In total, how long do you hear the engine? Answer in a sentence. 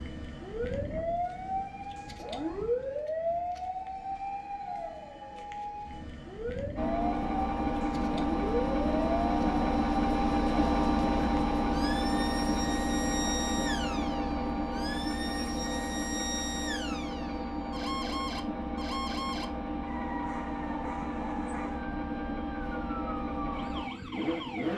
The engine can be heard for 18 seconds in total.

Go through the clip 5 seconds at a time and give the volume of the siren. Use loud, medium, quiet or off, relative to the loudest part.
loud, loud, medium, medium, medium.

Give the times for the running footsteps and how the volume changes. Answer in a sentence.
The running footsteps can't be heard in this clip.